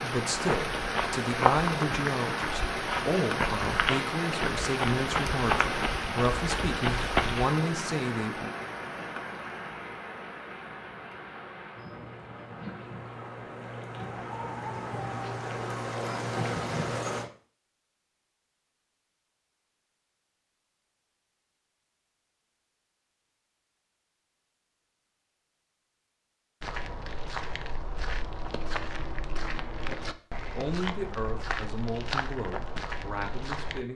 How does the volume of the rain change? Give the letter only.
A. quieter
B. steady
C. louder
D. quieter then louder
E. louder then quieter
D.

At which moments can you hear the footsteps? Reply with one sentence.
You can hear the footsteps from 0.3 to 7.5 s and from 26.6 to 33.9 s.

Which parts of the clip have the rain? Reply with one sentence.
The rain can be heard from 0.0 to 17.3 s.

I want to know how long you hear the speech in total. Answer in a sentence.
You can hear the speech for 12 seconds altogether.